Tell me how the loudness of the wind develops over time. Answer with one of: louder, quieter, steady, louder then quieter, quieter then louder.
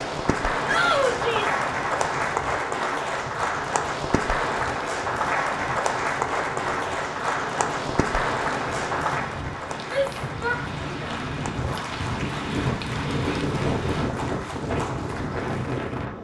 louder.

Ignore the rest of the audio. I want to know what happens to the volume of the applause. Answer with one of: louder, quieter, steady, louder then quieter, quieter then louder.
quieter.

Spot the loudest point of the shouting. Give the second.
1 s.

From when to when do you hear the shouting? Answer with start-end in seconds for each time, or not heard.
0.7-1.6, 9.8-11.2.